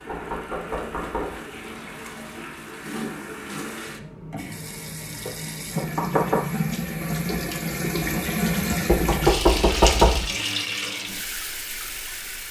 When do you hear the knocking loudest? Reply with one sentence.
The volume of the knocking peaks at 10 seconds.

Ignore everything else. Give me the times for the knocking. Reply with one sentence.
The knocking can be heard from 0.1 to 1.4 s, from 5.2 to 6.5 s and from 8.8 to 10.3 s.